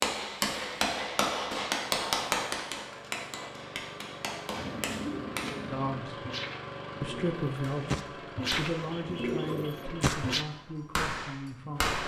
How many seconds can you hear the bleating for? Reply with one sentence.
The bleating can't be heard in this clip.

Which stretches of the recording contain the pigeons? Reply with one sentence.
You can hear the pigeons from 4.5 to 10.4 s.